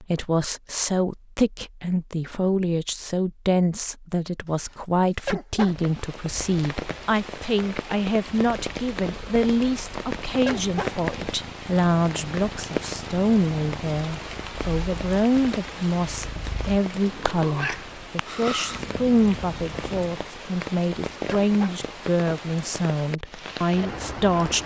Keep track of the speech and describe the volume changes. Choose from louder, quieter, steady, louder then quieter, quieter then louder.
steady.